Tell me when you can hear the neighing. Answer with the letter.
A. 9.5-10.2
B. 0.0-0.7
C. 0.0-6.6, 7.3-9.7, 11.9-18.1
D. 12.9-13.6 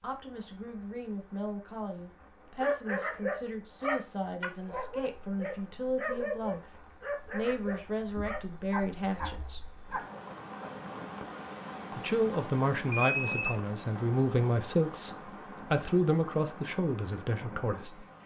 D.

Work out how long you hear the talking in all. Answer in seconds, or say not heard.
15 s.